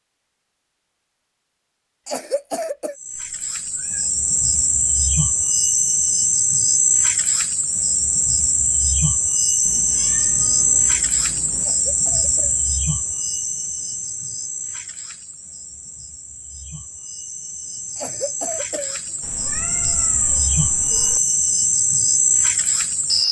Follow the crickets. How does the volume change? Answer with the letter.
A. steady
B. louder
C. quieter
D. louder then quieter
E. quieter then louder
E.